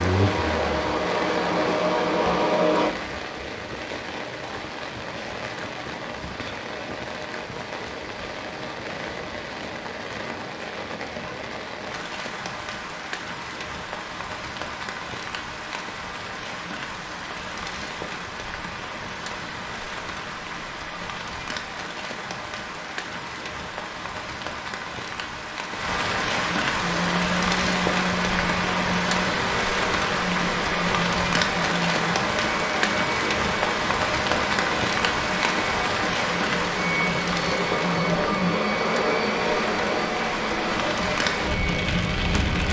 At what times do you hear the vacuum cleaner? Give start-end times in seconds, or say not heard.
0.0-2.9, 26.8-42.6.